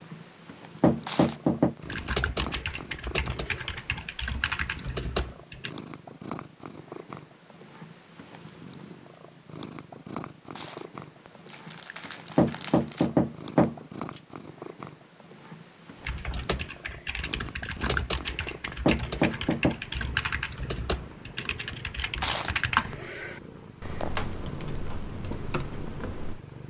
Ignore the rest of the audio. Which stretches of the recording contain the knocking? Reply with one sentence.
The knocking can be heard from 0.8 to 1.8 s, from 12.3 to 13.8 s and from 18.9 to 19.8 s.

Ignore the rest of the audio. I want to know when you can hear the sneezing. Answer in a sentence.
You can't hear the sneezing here.